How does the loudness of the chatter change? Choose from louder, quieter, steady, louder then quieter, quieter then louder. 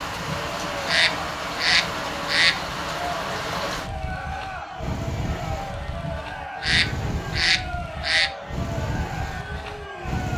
steady.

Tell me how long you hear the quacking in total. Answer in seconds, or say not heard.
5 s.